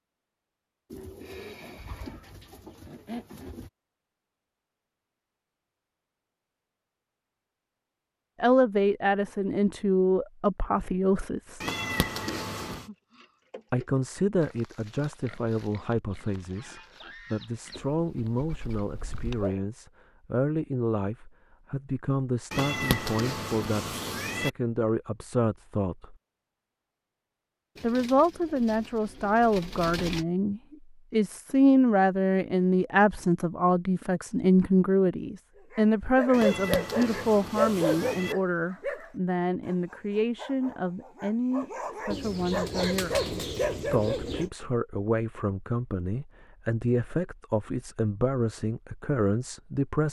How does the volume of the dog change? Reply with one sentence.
The loudness of the dog goes down, then up.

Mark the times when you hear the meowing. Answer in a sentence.
You can hear the meowing from 11.6 to 12.8 s, from 22.5 to 24.5 s and from 36.3 to 38.4 s.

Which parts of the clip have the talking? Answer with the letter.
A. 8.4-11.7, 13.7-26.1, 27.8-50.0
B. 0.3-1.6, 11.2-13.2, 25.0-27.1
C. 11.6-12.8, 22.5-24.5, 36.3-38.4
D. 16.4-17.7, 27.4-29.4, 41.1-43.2
A.